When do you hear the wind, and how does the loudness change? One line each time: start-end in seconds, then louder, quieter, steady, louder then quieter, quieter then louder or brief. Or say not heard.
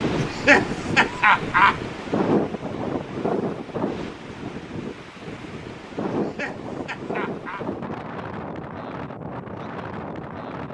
0.0-10.6 quieter.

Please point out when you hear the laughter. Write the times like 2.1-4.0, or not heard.
0.1-1.8, 6.0-7.7.